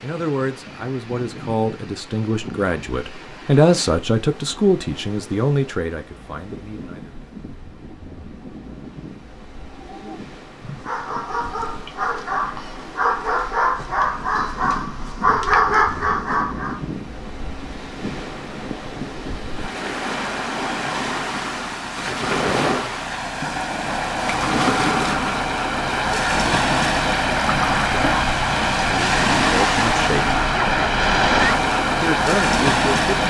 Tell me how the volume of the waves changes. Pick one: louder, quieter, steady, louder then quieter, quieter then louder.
louder.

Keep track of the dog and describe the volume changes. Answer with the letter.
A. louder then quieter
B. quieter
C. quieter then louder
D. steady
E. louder
E.